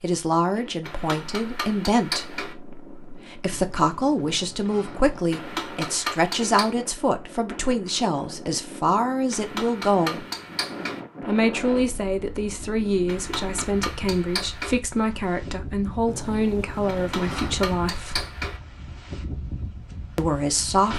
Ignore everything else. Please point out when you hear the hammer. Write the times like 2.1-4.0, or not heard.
0.8-2.5, 5.3-6.8, 9.3-11.0, 13.1-14.8, 16.9-18.6.